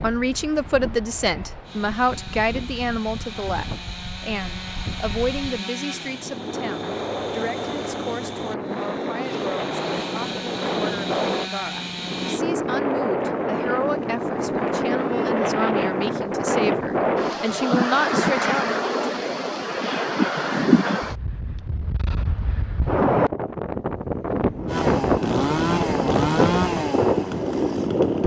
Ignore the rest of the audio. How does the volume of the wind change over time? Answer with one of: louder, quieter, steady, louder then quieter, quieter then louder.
louder.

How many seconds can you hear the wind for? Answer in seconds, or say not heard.
28 s.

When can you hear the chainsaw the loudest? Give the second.
26 s.